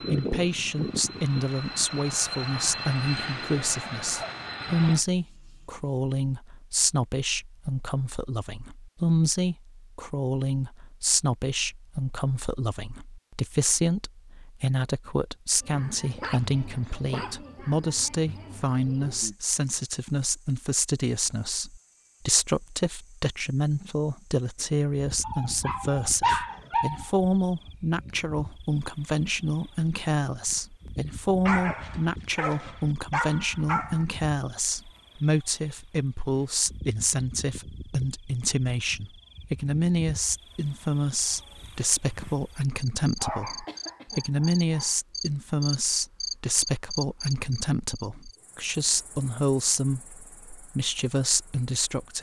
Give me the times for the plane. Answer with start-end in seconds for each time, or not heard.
0.0-5.0.